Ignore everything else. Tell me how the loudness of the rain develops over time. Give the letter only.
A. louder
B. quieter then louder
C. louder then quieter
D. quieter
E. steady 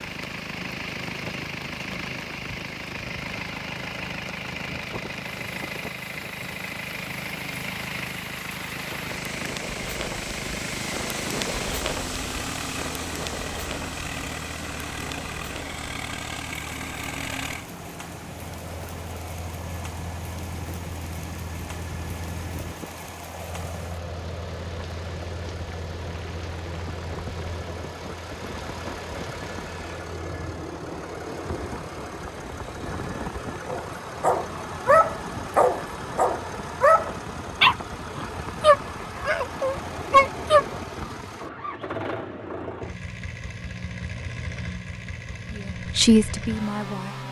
C.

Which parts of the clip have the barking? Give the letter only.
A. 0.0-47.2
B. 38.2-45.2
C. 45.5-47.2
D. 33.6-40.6
D.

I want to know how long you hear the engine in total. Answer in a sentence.
The engine can be heard for 47 seconds in total.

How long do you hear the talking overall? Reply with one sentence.
You can hear the talking for 2 seconds altogether.